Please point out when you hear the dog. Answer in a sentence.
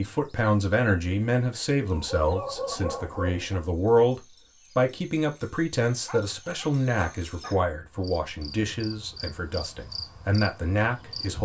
The dog can be heard from 1.9 to 3.6 s and from 6.0 to 7.7 s.